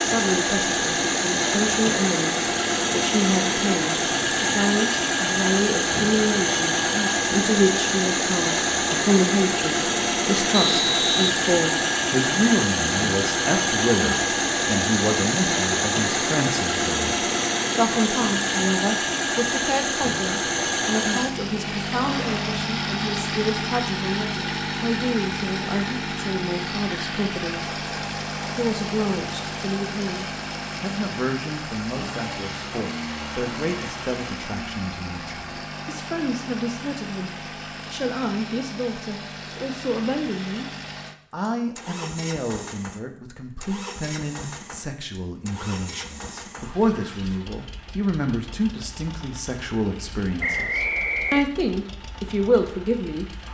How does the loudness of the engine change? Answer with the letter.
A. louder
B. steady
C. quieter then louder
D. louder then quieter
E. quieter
E.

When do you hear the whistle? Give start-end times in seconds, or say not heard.
10.5-11.3, 50.4-51.5.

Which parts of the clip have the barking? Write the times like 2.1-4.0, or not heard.
not heard.